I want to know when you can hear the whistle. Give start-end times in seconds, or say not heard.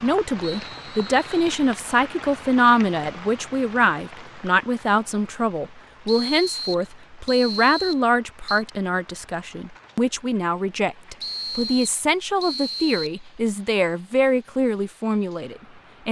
0.4-1.5, 6.0-8.7, 11.2-13.2.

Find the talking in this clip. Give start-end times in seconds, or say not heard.
0.0-16.0.